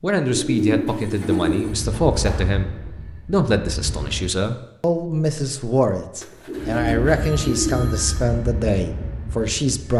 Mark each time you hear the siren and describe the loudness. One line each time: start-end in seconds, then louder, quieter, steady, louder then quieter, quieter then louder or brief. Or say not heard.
not heard.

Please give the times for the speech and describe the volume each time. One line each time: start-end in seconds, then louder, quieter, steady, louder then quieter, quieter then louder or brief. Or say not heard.
0.0-9.9 steady.